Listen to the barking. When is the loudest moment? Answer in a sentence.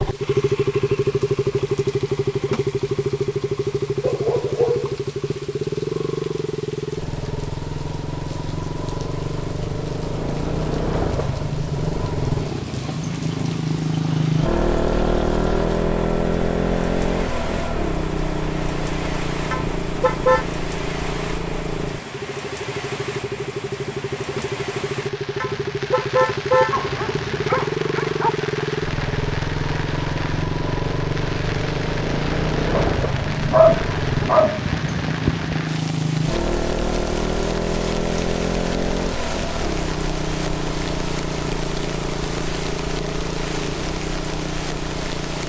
The volume of the barking peaks at 34 seconds.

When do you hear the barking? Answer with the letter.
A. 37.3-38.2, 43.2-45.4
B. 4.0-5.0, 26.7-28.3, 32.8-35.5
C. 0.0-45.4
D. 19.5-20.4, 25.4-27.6
B.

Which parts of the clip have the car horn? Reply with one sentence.
You can hear the car horn from 19.5 to 20.4 s and from 25.4 to 27.6 s.